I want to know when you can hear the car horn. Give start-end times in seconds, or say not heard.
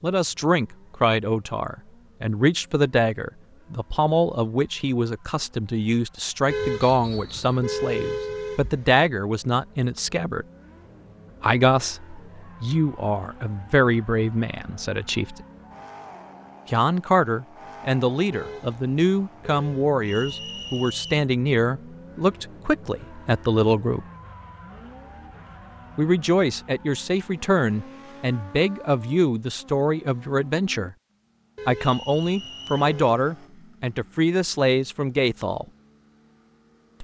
6.5-8.9, 18.3-19.9, 31.6-33.2.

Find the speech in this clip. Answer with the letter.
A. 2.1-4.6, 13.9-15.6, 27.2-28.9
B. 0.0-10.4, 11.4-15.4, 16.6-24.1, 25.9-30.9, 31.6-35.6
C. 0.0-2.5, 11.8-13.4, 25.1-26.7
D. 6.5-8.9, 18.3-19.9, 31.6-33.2
B.